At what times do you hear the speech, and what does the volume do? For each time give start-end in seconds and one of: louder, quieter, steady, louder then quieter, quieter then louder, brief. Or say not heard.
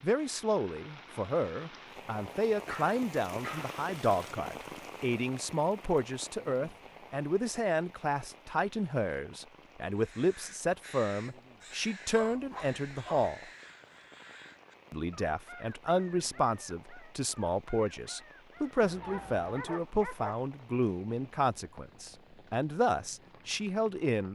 0.0-13.4 steady
14.9-24.3 steady.